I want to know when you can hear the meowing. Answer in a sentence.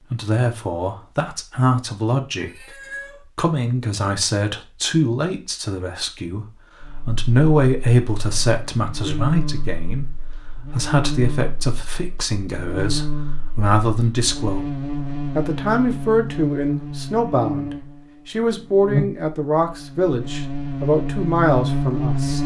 You can hear the meowing from 2.4 to 3.2 s.